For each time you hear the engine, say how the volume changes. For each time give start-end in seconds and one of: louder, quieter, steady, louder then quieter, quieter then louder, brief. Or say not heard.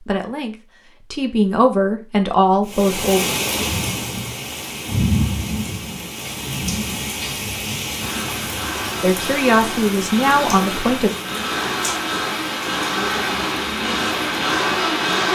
8.0-15.3 louder.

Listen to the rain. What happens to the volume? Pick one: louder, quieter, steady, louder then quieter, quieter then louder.
quieter.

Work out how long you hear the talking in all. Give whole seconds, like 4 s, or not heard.
5 s.